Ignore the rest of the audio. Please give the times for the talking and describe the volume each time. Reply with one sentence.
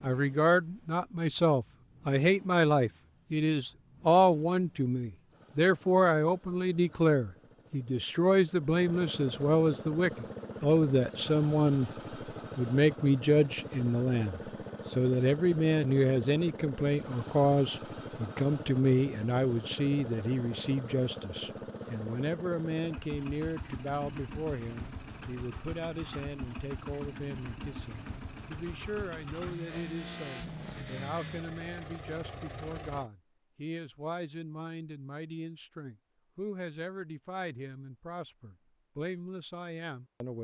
The talking can be heard from 0.0 to 11.9 s, at a steady volume; and from 12.6 to 40.3 s, getting quieter.